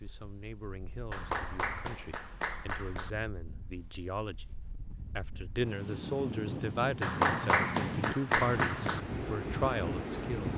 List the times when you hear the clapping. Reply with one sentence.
You can hear the clapping from 1.1 to 3.1 s and from 7.0 to 9.0 s.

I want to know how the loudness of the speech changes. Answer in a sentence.
The loudness of the speech goes up.